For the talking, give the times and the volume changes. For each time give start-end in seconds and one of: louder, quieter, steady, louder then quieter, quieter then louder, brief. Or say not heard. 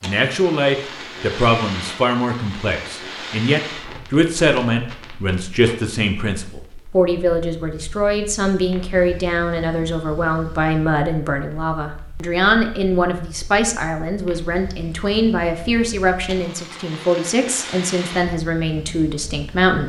0.0-19.8 steady.